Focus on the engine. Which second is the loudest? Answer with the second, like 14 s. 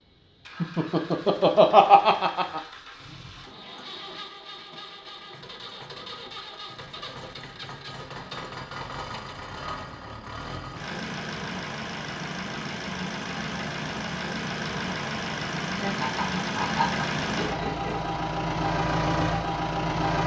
19 s.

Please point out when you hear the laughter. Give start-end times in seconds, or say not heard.
0.6-2.6, 15.8-17.9.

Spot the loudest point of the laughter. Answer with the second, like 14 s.
2 s.